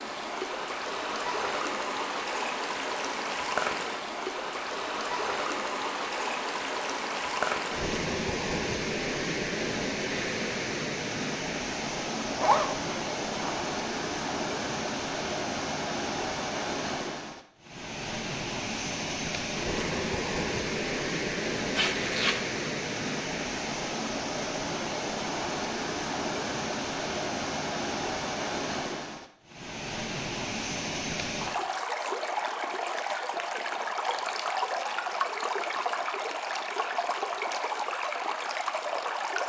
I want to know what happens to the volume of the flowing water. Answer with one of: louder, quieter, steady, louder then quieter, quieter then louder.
steady.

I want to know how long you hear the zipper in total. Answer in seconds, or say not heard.
2 s.